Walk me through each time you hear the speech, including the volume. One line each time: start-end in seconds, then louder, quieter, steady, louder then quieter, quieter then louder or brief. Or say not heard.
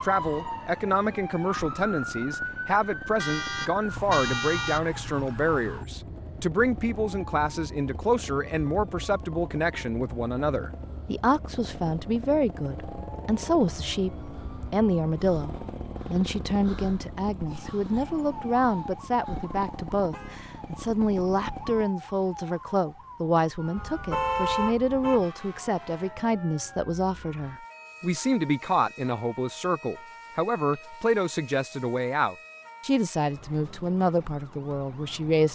0.0-35.5 steady.